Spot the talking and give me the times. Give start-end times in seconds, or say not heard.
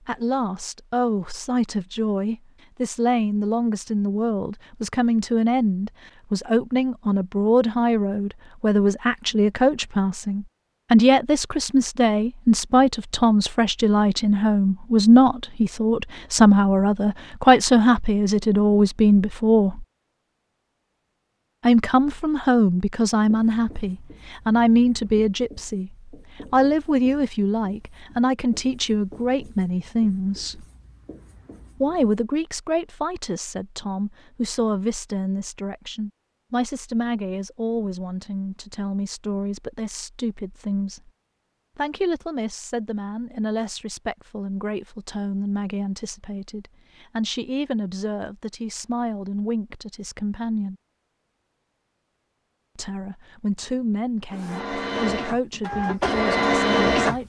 0.1-19.9, 21.6-30.6, 31.8-41.1, 41.8-50.8, 52.8-57.2.